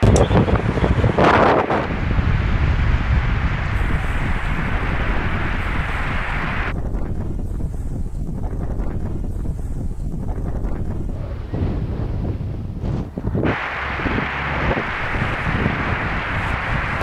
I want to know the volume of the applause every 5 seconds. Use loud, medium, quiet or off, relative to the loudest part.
medium, loud, loud, loud.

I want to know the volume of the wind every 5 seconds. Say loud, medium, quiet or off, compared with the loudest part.
loud, medium, medium, medium.